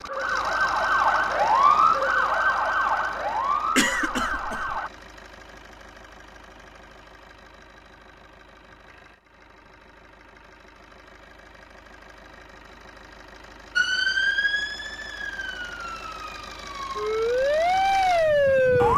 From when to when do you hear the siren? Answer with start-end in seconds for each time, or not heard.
0.0-4.9, 13.8-18.9.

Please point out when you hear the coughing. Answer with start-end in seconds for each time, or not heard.
3.8-4.8.